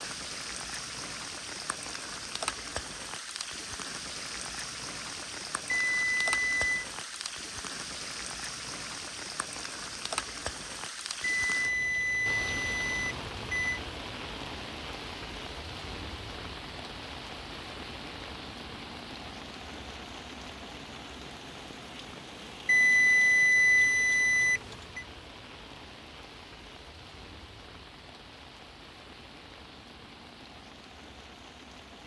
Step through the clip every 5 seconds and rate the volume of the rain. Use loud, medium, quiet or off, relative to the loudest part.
loud, loud, loud, loud, medium, medium, medium.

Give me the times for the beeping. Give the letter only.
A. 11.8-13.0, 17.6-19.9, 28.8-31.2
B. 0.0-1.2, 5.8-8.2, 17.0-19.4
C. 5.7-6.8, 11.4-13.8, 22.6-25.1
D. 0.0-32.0
C.